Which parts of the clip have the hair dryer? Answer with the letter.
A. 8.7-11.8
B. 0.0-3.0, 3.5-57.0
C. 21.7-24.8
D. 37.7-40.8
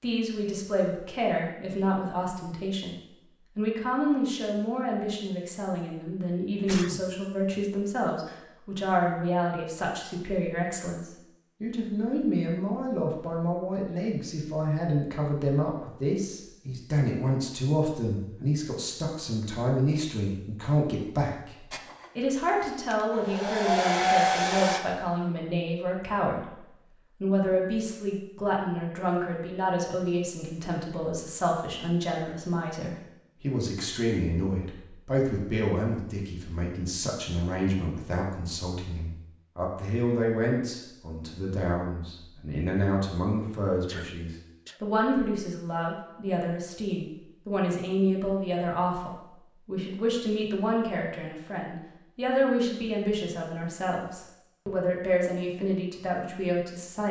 C.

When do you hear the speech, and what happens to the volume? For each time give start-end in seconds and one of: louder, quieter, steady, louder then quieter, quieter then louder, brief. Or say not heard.
0.0-3.0 brief
3.5-57.0 steady.